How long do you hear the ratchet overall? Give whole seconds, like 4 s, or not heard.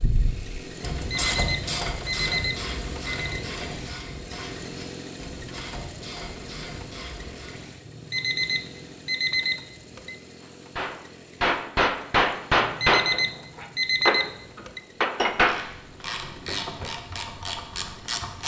11 s.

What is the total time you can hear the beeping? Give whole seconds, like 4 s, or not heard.
7 s.